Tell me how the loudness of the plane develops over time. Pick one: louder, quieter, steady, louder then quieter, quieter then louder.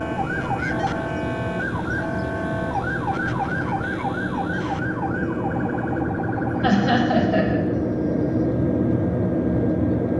louder.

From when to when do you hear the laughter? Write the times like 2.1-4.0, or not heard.
6.6-7.6.